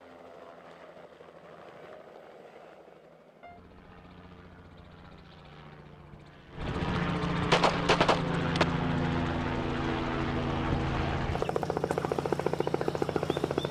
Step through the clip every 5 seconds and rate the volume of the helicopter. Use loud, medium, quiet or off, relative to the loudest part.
quiet, loud, loud.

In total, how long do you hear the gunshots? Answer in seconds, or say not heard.
2 s.